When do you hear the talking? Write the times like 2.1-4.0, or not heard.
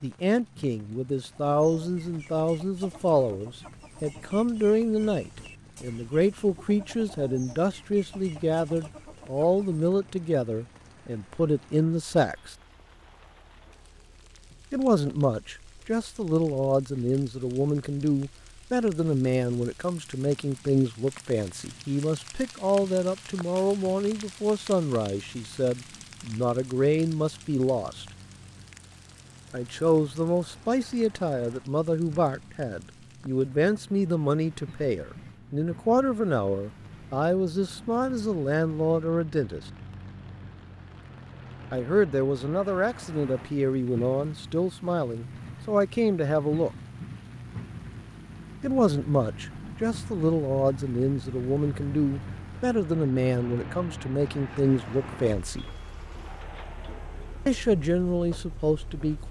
0.0-12.6, 14.7-28.1, 29.5-39.6, 41.7-46.7, 48.6-55.6, 57.5-59.2.